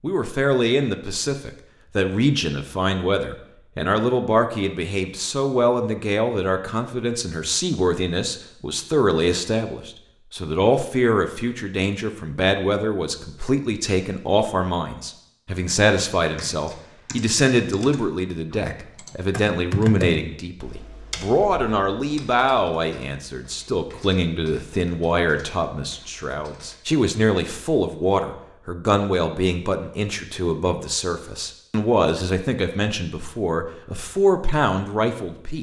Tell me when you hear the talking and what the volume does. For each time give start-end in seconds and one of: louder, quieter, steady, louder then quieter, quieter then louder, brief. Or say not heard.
0.0-35.5 steady.